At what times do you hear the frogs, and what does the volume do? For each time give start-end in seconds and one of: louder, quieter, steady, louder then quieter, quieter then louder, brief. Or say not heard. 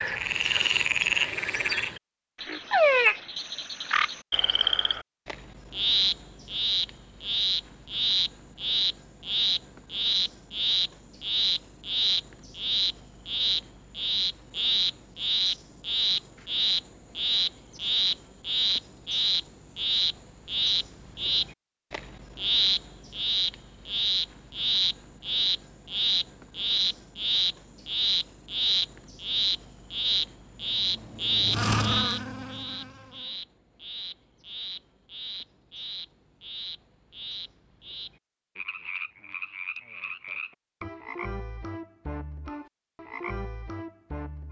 0.0-44.4 quieter.